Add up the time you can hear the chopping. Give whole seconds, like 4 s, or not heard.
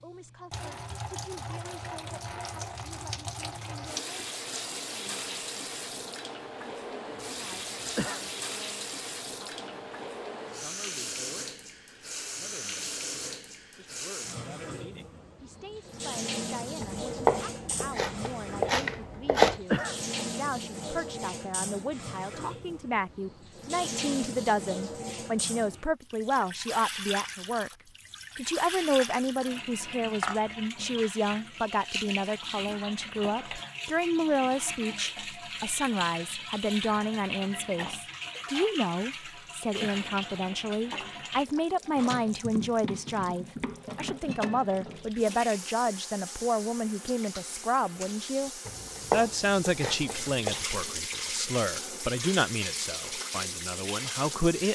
5 s.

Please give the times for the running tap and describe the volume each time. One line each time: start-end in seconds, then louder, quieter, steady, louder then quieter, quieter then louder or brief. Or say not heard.
0.0-54.7 steady.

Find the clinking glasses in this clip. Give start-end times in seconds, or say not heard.
not heard.